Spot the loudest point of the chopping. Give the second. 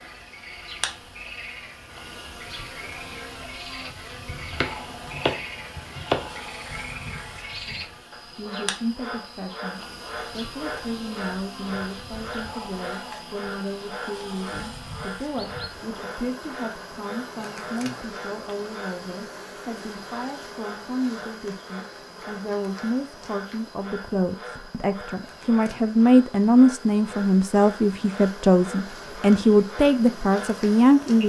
6 s.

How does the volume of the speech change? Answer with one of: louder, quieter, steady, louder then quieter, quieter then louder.
louder.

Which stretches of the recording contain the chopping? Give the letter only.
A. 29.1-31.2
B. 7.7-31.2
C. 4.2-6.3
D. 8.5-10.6
C.